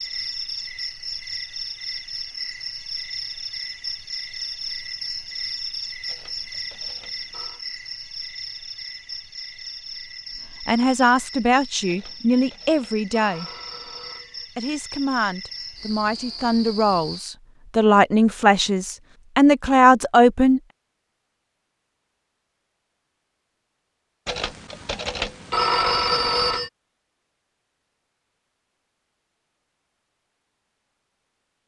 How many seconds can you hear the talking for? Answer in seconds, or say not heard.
9 s.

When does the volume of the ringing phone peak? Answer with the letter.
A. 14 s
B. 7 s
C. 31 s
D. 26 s
D.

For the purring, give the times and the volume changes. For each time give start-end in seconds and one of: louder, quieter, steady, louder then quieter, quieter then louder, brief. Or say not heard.
not heard.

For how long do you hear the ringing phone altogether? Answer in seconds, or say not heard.
7 s.